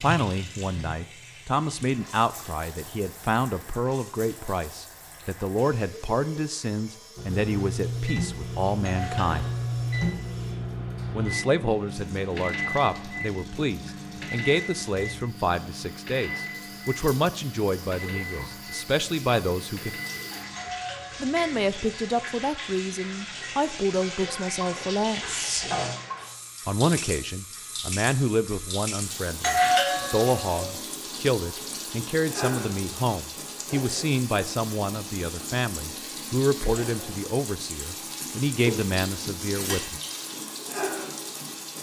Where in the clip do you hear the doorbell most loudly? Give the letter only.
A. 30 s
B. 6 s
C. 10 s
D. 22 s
A.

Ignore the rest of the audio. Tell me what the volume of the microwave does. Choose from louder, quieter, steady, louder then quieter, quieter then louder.
quieter.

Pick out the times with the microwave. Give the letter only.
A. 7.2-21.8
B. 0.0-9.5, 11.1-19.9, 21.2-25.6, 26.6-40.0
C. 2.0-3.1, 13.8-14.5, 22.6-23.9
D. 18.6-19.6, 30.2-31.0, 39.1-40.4
A.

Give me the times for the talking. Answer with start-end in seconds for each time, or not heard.
0.0-9.5, 11.1-19.9, 21.2-25.6, 26.6-40.0.